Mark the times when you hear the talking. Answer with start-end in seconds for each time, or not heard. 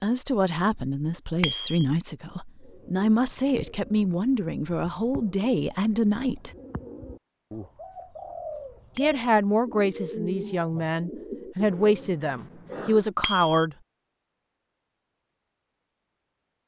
0.0-6.5, 8.9-13.8.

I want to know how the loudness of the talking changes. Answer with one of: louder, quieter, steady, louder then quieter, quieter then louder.
steady.